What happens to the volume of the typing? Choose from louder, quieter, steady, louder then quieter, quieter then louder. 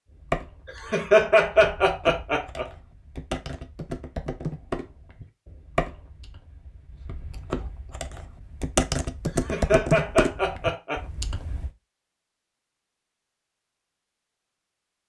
louder.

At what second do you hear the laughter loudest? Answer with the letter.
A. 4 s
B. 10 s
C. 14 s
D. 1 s
D.